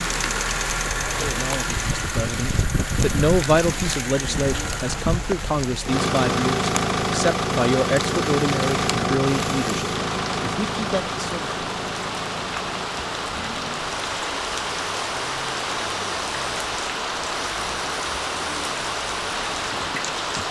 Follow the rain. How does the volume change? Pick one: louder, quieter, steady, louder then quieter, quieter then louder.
louder.